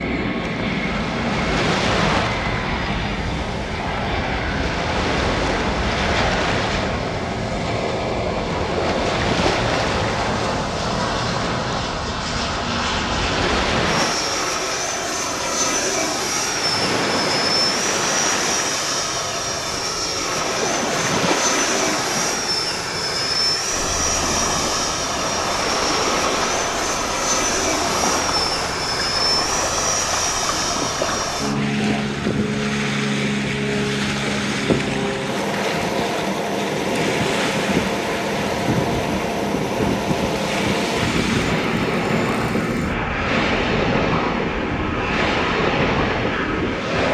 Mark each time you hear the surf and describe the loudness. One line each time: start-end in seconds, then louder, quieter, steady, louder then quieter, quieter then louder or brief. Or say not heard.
0.2-47.0 steady.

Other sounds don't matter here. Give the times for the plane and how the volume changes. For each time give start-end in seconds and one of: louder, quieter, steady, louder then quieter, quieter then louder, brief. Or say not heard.
0.0-47.0 steady.